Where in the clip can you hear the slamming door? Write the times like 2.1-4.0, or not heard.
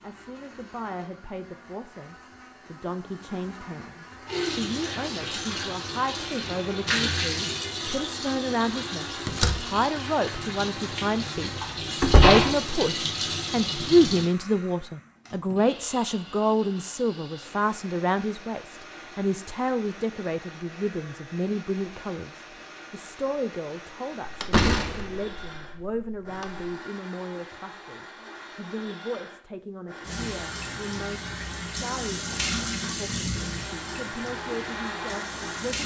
9.2-9.8, 12.0-12.4, 24.2-26.6.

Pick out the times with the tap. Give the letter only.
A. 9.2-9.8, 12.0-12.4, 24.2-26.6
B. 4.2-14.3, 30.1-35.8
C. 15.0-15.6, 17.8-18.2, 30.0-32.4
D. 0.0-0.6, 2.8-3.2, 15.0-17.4
B.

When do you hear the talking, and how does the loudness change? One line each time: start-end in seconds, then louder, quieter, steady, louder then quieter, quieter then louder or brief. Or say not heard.
0.0-11.6 louder
12.2-35.8 quieter.